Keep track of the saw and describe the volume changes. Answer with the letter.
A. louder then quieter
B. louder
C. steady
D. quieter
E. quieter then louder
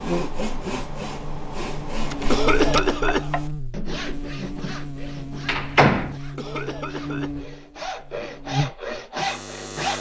E.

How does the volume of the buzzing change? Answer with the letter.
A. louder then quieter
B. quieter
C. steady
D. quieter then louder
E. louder
C.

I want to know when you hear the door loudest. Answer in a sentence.
The volume of the door peaks at 6 seconds.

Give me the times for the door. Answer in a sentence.
You can hear the door from 2.1 to 2.9 s and from 5.5 to 6.2 s.